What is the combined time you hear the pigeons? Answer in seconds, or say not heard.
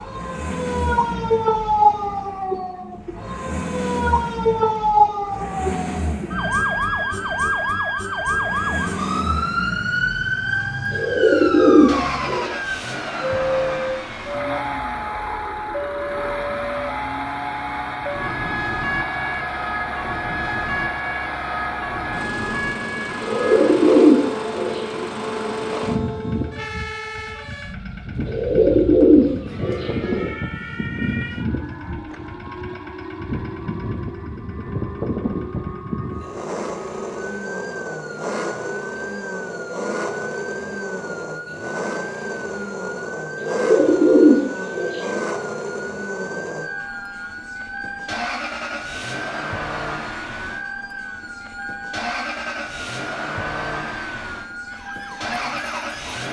7 s.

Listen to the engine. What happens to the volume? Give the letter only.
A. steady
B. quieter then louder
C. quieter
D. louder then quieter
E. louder
A.